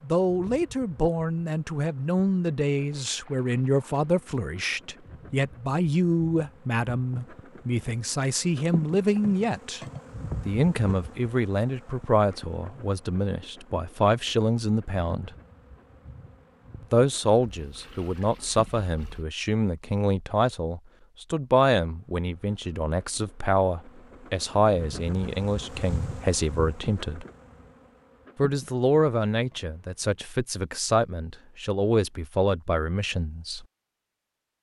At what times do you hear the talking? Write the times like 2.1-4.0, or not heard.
0.0-9.8, 10.4-15.3, 16.9-27.2, 28.4-33.6.